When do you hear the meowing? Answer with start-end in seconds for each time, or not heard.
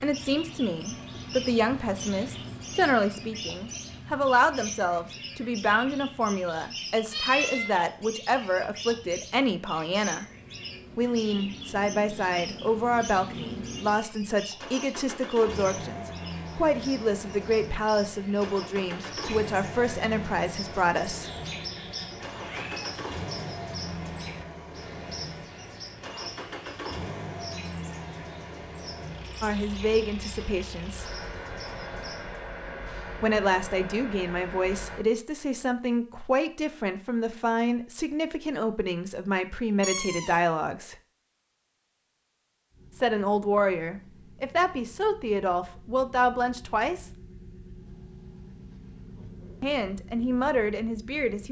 7.1-7.7, 21.9-23.0, 39.8-40.4.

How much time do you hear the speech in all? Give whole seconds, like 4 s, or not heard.
36 s.